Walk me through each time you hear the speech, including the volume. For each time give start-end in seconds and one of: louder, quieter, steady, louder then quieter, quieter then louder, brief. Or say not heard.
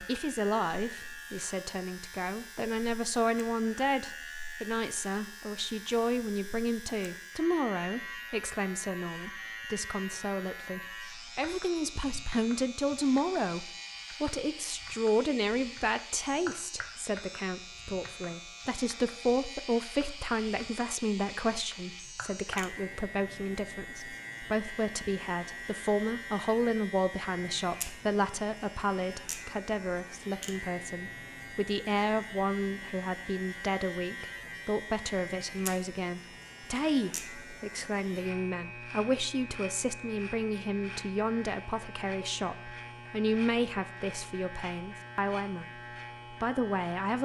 0.0-47.2 steady.